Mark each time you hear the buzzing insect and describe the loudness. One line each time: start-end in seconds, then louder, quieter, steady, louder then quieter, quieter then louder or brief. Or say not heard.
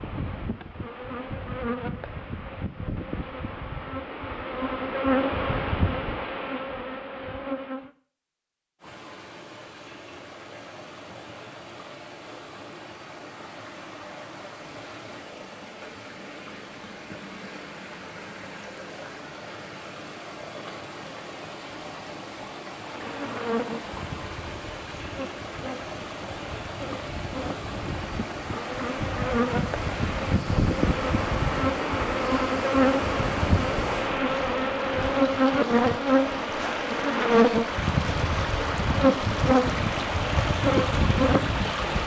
0.0-7.9 louder then quieter
22.9-42.0 louder.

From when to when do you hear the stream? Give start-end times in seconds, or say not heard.
8.8-42.0.